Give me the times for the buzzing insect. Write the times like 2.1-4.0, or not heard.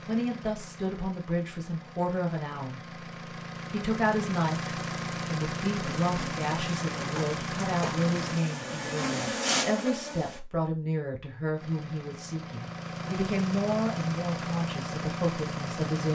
6.0-10.4.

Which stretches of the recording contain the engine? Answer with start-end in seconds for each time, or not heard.
0.0-8.4, 11.5-16.1.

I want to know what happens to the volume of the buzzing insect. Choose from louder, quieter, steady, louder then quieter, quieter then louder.
louder.